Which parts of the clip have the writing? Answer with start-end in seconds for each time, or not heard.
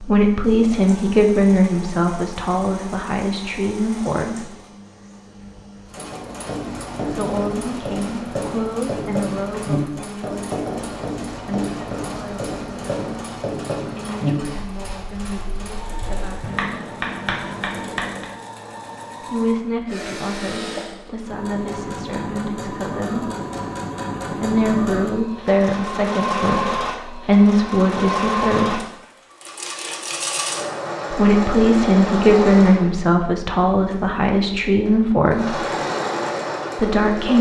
6.0-18.3.